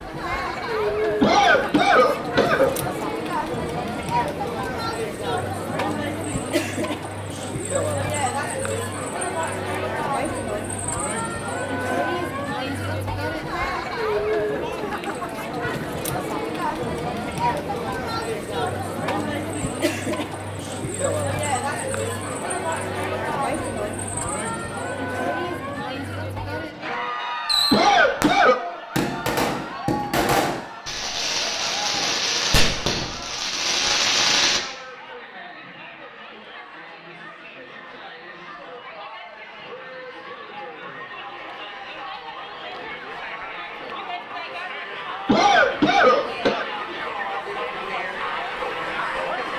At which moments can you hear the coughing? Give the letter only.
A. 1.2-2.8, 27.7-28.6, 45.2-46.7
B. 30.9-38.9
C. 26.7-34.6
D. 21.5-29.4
A.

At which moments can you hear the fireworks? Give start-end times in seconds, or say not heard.
26.7-34.6.